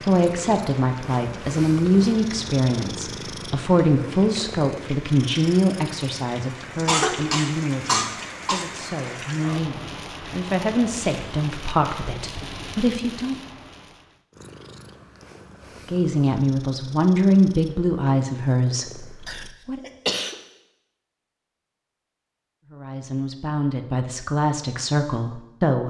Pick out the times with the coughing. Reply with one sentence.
The coughing can be heard from 6.8 to 8.8 s and from 19.2 to 20.4 s.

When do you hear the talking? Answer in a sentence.
The talking can be heard from 0.0 to 13.3 s, from 15.8 to 19.8 s and from 22.7 to 25.8 s.